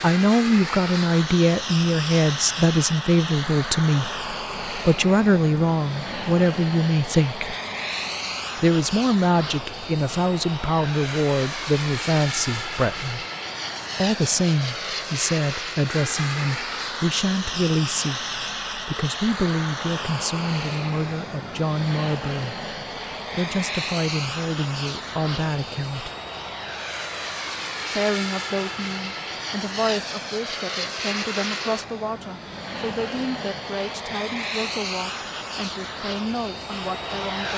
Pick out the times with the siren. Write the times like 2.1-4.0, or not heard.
not heard.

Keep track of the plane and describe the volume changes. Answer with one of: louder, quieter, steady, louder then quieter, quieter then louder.
steady.